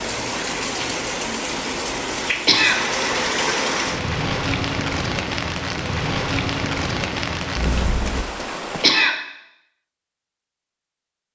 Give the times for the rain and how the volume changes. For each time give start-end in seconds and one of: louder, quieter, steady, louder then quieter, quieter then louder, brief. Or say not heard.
0.0-9.1 steady.